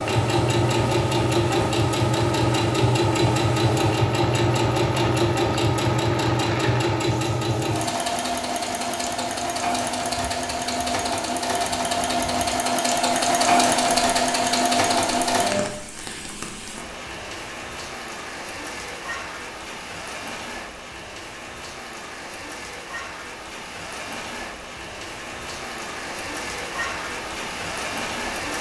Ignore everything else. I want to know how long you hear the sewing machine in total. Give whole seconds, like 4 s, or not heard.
16 s.